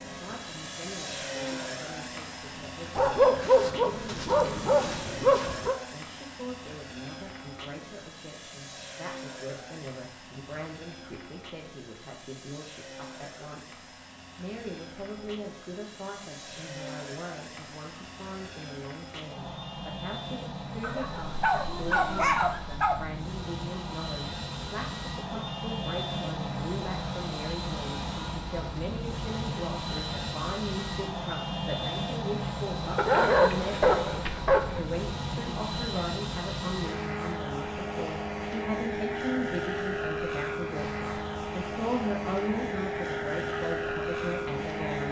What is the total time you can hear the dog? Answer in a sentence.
The dog can be heard for 7 seconds in total.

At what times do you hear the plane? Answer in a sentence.
The plane can be heard from 0.0 to 45.0 s.